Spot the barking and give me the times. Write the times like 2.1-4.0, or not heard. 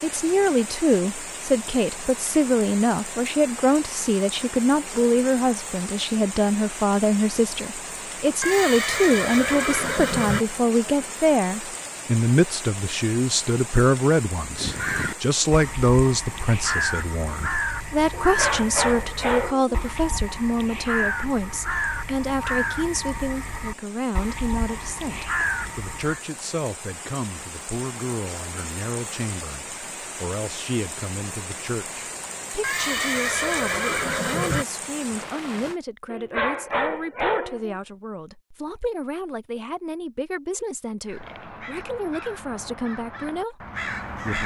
18.1-19.8, 36.0-37.8.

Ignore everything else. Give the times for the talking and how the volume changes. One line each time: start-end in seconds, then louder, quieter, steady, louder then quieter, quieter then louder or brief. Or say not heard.
0.0-44.4 quieter.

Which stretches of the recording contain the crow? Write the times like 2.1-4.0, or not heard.
14.6-26.2, 41.0-44.4.